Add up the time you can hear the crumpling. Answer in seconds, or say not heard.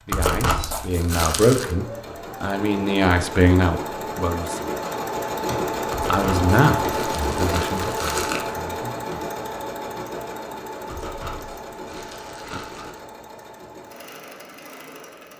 6 s.